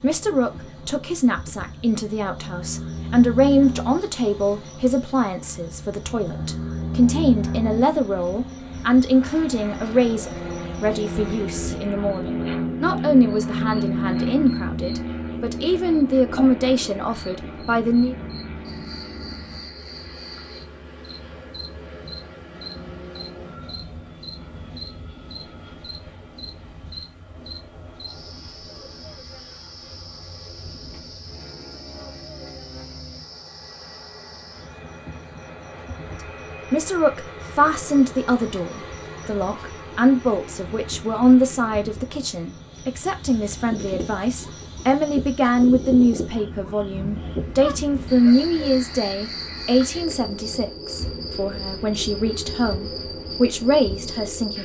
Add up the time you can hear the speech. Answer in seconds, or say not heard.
36 s.